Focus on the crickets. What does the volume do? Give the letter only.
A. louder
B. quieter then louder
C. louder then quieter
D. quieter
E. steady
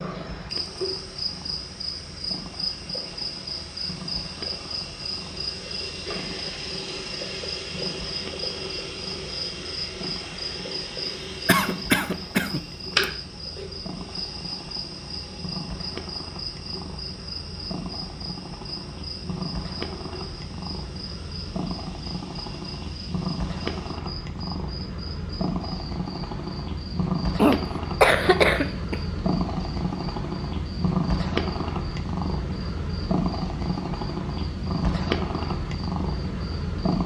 D.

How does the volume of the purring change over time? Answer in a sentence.
The volume of the purring goes up.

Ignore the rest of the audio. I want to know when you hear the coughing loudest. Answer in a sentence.
The volume of the coughing peaks at 28 seconds.